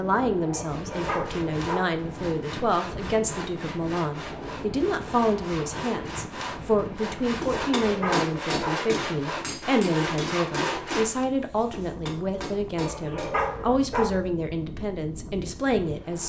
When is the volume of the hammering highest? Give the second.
8 s.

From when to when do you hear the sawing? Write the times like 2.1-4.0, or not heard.
0.7-11.2.